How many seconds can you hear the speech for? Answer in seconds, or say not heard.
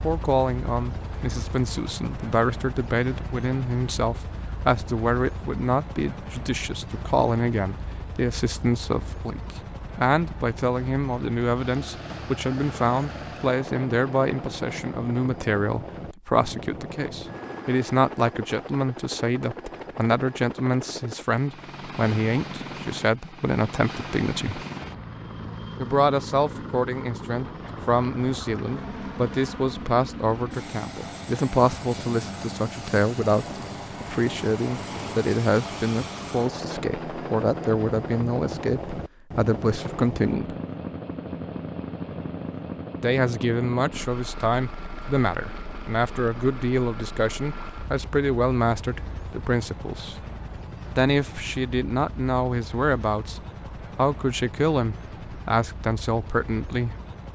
53 s.